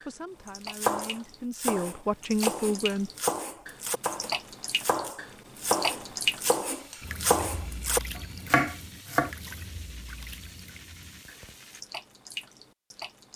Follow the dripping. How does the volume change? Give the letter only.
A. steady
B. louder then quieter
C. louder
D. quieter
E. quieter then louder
B.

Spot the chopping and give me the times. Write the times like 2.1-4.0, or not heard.
0.7-9.3.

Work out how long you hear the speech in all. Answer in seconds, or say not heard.
3 s.